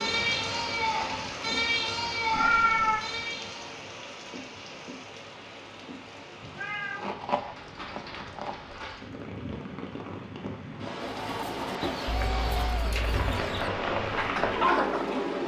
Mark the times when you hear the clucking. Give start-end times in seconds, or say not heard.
11.0-15.2.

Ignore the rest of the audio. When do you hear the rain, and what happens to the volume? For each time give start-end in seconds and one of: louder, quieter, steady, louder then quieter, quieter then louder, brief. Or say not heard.
0.0-15.4 quieter then louder.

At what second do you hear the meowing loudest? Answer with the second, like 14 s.
3 s.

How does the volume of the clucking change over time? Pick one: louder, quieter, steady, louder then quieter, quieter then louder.
quieter then louder.